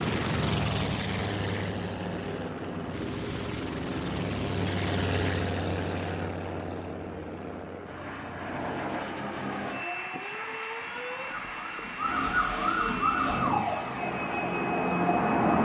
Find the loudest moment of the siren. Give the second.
15 s.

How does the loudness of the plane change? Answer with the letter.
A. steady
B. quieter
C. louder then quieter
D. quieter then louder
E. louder
B.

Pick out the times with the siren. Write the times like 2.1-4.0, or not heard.
9.8-15.5.